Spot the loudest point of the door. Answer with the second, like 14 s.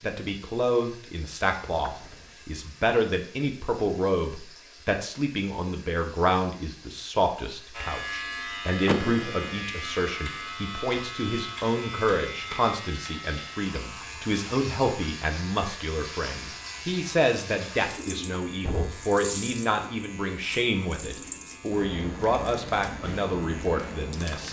9 s.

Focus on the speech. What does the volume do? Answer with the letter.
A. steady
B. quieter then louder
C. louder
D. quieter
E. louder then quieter
A.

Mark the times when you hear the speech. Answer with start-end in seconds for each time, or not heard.
0.0-24.4.